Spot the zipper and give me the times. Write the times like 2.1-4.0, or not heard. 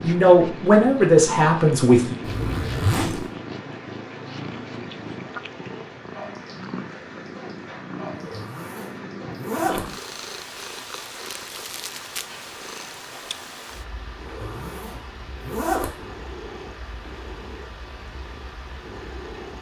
2.2-3.3, 8.2-9.8, 14.2-15.9.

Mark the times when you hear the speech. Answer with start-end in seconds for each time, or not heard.
0.0-2.1.